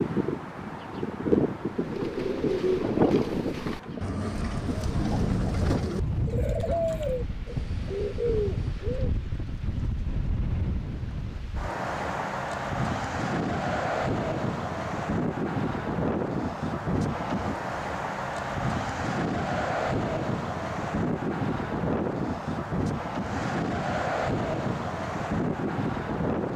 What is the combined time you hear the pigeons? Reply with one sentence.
You can hear the pigeons for 7 seconds altogether.